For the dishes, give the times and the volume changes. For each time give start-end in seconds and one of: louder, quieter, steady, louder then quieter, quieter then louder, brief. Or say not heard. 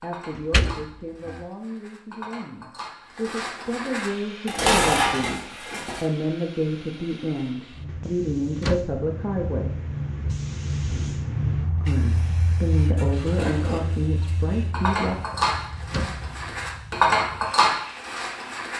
0.0-6.0 louder
12.9-18.7 louder.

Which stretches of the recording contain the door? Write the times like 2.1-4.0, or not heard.
0.3-1.4, 8.1-8.9, 15.3-16.4.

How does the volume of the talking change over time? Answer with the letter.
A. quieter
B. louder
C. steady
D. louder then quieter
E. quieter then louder
B.